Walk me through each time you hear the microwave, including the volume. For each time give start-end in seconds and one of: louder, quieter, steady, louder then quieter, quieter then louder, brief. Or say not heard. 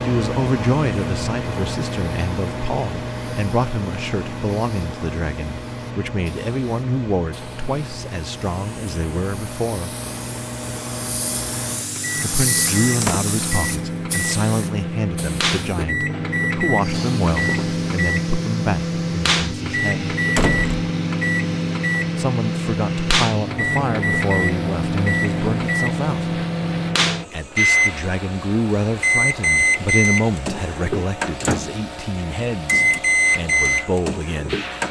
0.0-34.8 louder.